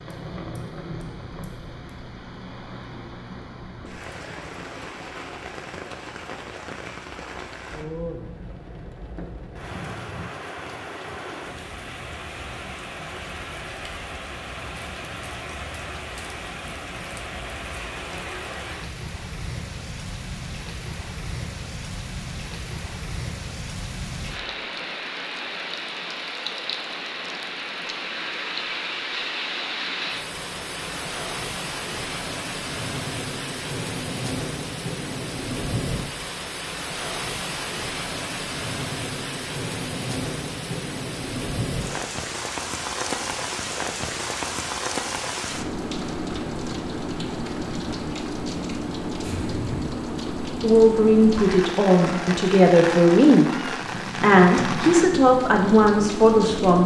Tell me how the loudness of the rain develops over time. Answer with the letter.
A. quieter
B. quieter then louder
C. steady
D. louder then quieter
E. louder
E.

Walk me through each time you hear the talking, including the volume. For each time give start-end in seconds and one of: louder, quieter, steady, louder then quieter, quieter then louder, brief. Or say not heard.
50.6-56.8 steady.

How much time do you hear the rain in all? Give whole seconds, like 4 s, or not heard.
57 s.